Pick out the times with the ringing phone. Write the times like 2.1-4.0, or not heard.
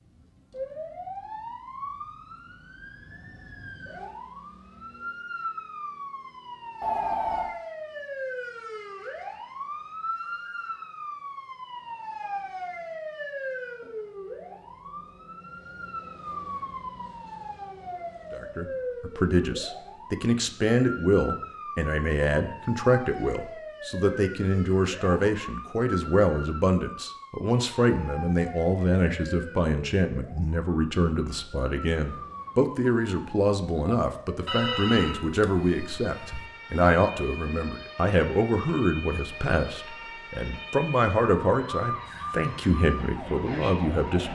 6.8-7.5, 34.5-36.4.